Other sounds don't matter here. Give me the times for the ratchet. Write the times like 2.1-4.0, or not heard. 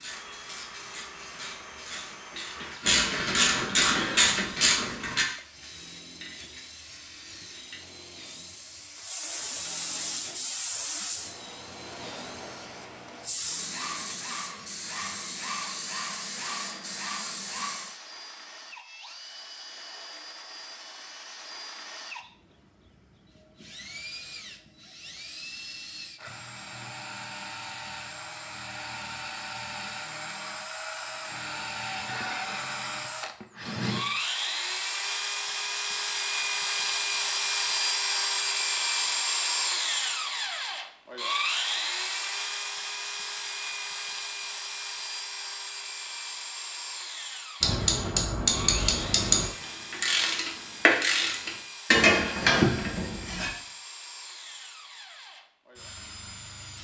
0.0-5.2, 47.6-53.5.